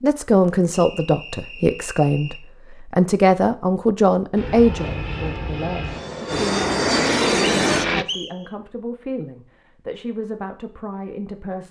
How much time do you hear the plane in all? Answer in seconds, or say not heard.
4 s.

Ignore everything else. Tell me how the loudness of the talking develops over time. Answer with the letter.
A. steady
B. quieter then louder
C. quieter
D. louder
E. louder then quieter
C.